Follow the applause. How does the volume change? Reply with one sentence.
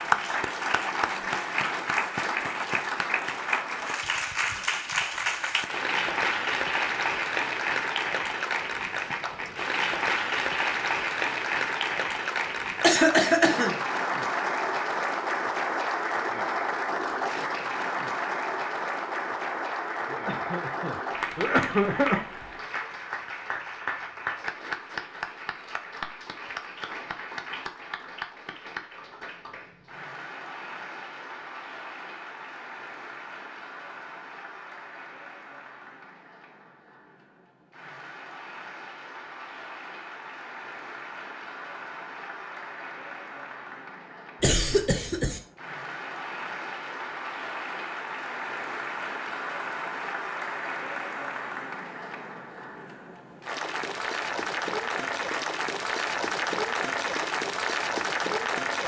The loudness of the applause goes down, then up.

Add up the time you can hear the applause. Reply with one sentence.
You can hear the applause for 59 seconds altogether.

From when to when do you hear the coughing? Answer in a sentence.
You can hear the coughing from 12.8 to 13.8 s, from 20.1 to 22.2 s and from 44.4 to 45.4 s.